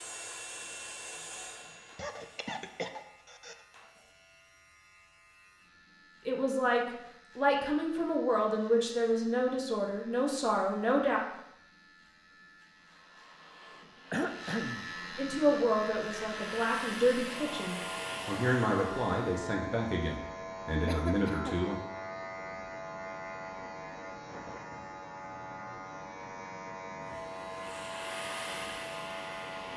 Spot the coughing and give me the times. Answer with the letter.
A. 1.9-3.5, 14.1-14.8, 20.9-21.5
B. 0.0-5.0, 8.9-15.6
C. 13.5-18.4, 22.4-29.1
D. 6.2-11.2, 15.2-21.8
A.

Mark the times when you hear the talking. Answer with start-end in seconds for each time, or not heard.
6.2-11.2, 15.2-21.8.